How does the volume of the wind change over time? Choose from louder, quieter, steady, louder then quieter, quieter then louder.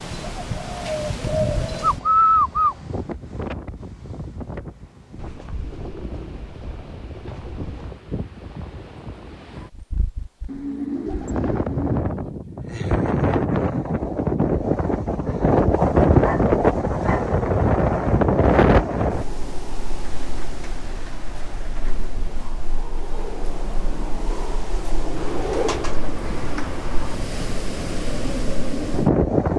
louder then quieter.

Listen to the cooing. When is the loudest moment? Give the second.
2 s.